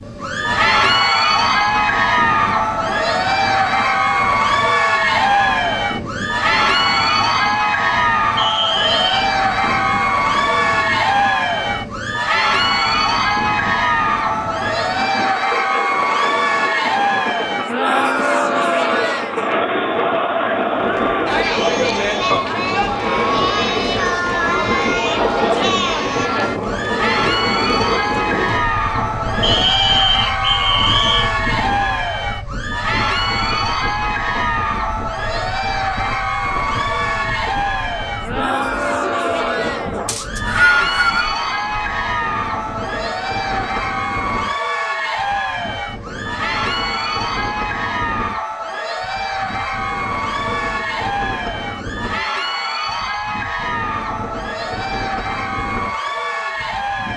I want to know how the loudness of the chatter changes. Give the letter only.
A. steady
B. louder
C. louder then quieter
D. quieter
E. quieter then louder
D.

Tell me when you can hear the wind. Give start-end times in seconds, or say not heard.
0.0-57.1.